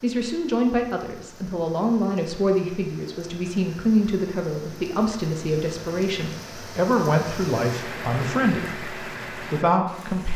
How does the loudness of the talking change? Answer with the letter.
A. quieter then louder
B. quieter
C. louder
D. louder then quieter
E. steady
E.